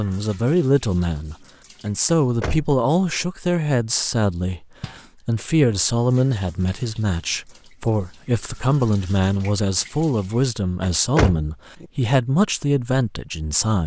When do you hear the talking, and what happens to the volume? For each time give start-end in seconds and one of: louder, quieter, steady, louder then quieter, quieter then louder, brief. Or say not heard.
0.0-13.8 steady.